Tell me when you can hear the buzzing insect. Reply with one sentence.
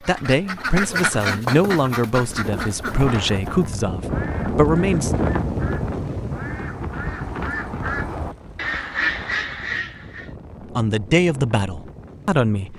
You can't hear the buzzing insect here.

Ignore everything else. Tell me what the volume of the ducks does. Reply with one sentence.
The volume of the ducks goes down, then up.